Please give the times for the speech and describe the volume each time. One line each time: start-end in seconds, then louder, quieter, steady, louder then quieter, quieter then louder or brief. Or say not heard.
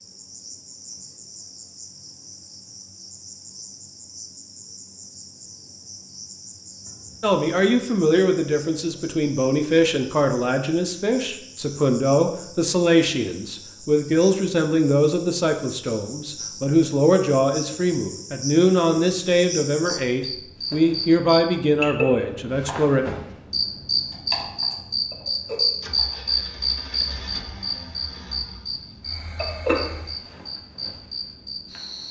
7.2-23.1 steady.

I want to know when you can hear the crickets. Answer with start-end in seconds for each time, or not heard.
0.0-32.0.